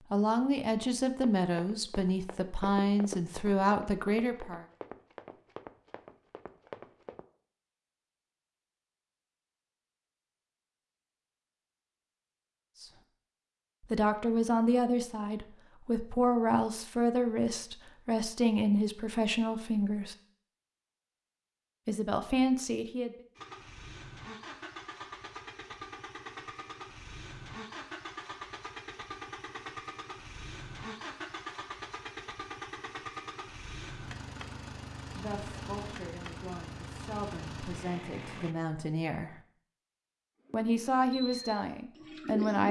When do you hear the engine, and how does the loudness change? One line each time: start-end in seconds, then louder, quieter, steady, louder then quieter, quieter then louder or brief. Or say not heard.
23.4-38.5 steady.